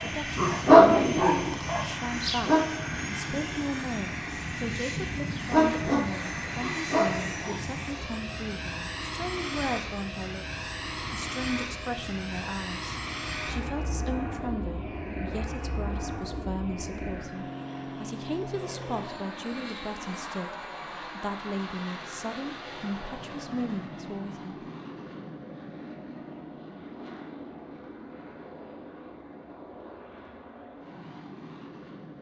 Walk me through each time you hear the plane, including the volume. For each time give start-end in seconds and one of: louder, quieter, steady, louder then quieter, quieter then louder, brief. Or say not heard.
0.0-32.1 quieter.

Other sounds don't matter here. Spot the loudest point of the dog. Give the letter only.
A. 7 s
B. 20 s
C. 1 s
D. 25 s
C.